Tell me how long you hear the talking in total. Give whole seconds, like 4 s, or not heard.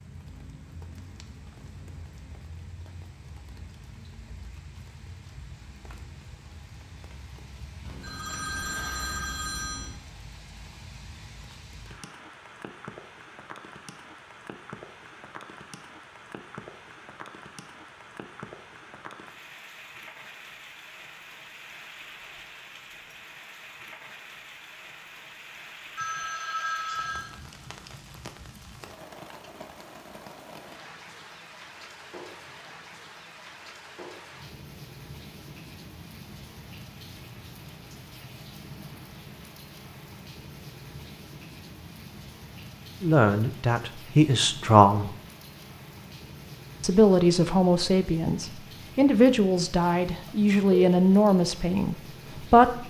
8 s.